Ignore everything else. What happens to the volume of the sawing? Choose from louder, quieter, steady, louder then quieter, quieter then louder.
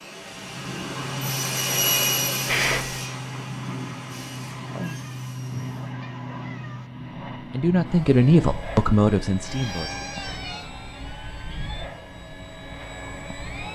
louder then quieter.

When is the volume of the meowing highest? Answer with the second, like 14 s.
3 s.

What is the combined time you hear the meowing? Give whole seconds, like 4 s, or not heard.
4 s.